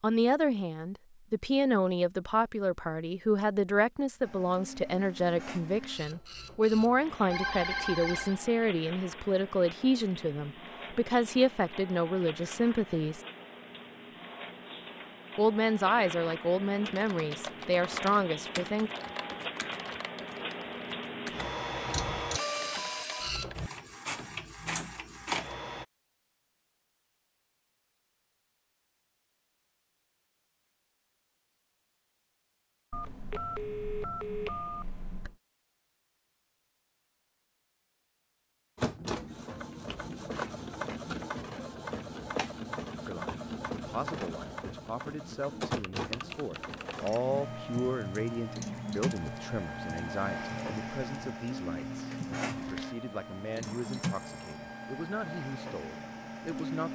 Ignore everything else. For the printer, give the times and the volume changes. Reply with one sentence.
The printer can be heard from 4.2 to 25.9 s, getting louder; and from 38.8 to 56.9 s, at a steady volume.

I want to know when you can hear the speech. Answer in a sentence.
The speech can be heard from 0.0 to 13.2 s, from 15.3 to 18.9 s and from 43.0 to 56.9 s.